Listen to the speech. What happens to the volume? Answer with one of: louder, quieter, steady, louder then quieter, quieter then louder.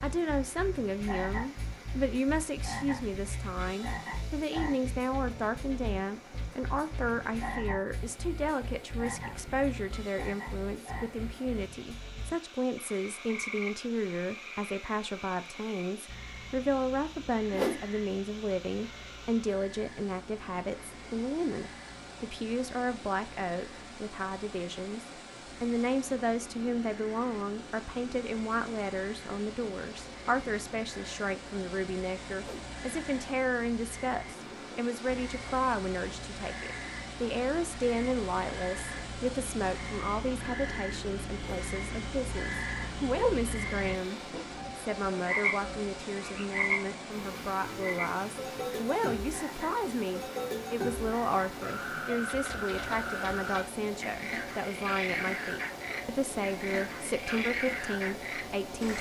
steady.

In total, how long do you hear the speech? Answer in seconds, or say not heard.
59 s.